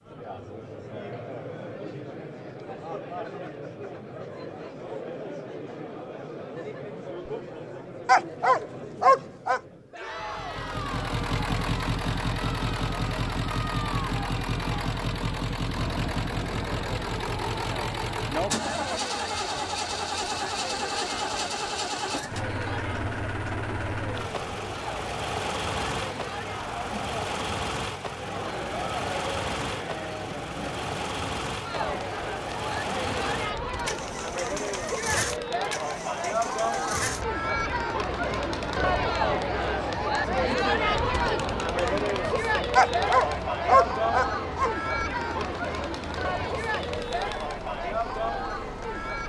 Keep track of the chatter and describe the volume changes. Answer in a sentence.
The loudness of the chatter goes up.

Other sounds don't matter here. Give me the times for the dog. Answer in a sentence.
The dog can be heard from 8.1 to 9.6 s and from 42.8 to 44.7 s.